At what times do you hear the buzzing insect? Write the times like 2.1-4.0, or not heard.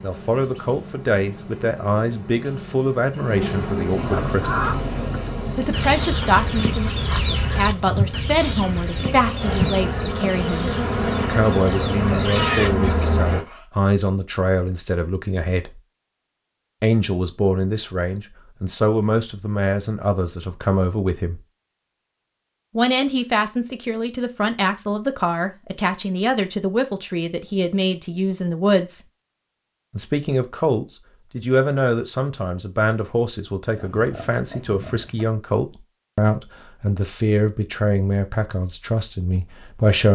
0.0-13.4.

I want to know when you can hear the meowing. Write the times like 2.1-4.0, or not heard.
not heard.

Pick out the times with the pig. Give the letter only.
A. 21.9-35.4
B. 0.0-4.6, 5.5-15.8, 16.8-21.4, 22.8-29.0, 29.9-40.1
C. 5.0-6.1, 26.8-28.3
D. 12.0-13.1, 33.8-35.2
D.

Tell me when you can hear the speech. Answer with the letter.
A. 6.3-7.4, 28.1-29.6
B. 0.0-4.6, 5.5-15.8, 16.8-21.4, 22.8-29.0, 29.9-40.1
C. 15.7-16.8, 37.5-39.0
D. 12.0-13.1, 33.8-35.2
B.